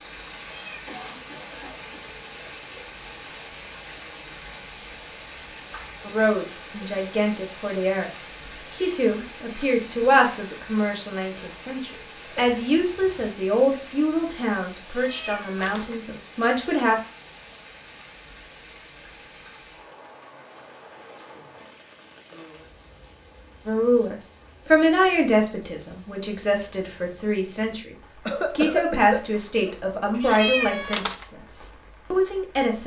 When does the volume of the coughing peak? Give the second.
29 s.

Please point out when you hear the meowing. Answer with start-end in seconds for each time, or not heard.
0.5-0.9, 14.8-15.9, 30.1-31.2.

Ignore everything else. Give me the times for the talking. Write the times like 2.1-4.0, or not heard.
6.0-17.0, 23.6-32.8.